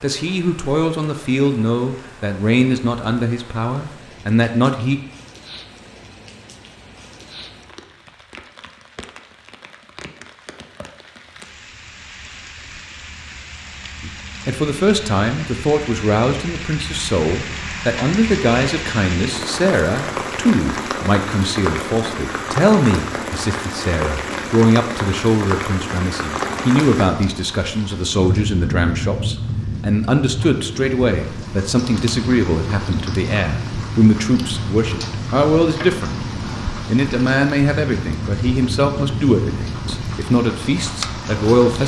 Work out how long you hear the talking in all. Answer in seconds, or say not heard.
32 s.